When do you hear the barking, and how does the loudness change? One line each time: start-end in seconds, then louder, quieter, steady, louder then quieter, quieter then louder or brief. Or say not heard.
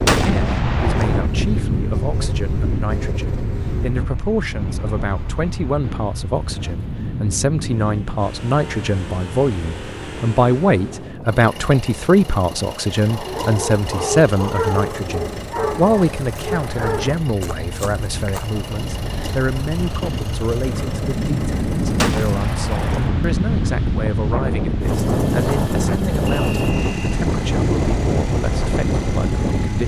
13.0-18.6 quieter.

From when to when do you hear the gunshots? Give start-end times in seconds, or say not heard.
0.1-1.3, 21.9-23.2.